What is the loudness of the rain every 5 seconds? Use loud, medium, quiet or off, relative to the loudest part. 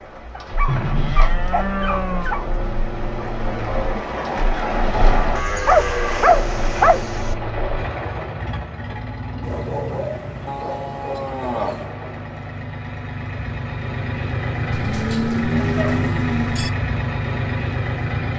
loud, loud, medium, off.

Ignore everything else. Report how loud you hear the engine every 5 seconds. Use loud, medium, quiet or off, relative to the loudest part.
medium, medium, medium, loud.